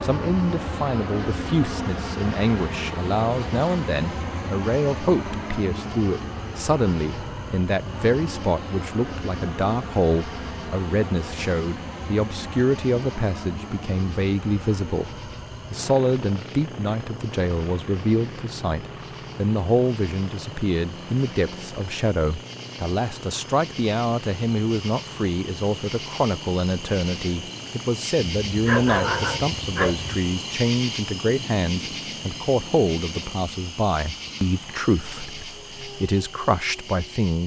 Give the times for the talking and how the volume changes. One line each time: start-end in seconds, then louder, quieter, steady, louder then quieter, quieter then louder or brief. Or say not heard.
0.0-37.4 steady.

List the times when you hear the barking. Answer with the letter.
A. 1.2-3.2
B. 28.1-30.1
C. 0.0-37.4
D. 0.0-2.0
B.